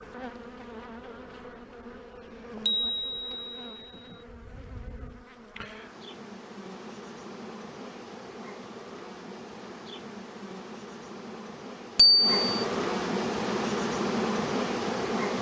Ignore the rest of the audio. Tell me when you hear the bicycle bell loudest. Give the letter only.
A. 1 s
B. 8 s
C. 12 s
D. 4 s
C.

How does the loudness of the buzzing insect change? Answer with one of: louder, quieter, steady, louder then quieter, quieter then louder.
louder.